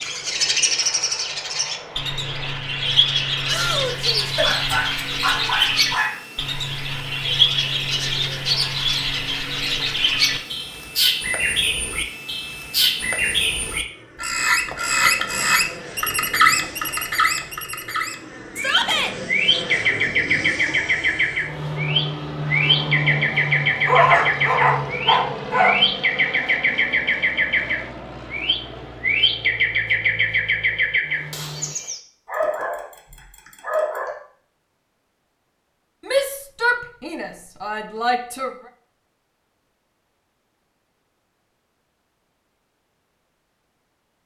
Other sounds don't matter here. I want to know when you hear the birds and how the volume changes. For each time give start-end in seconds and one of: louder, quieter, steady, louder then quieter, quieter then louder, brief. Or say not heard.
0.0-32.0 steady.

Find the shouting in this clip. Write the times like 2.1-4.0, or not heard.
3.5-4.3, 18.6-19.1, 36.0-38.5.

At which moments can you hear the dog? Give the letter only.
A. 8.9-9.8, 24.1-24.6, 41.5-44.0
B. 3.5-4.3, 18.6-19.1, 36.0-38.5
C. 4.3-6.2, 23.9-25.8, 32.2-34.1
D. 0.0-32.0
C.